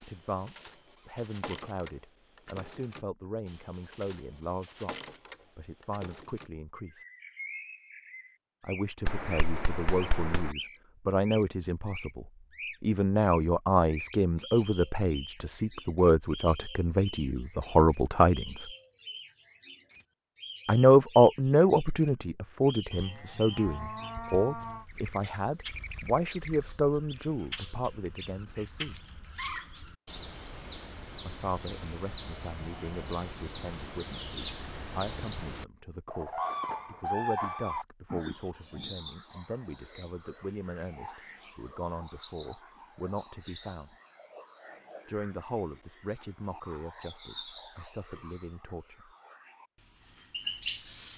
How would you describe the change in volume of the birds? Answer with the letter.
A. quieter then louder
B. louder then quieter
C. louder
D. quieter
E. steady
C.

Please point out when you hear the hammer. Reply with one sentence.
The hammer can be heard from 9.1 to 10.6 s.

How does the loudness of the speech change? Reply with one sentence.
The volume of the speech goes up, then down.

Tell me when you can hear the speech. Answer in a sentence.
You can hear the speech from 0.0 to 7.0 s, from 8.6 to 18.6 s, from 20.6 to 28.9 s, from 31.2 to 44.0 s and from 45.0 to 49.1 s.